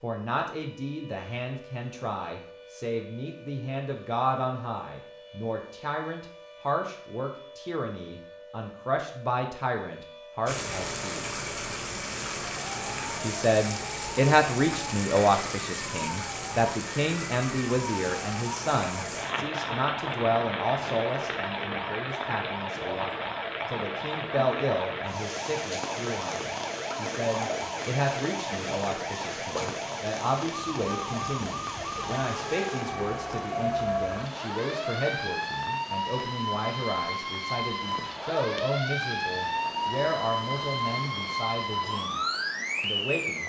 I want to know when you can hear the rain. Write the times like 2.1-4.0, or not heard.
10.4-43.4.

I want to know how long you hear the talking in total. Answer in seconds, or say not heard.
41 s.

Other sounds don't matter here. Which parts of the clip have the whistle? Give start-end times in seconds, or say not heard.
not heard.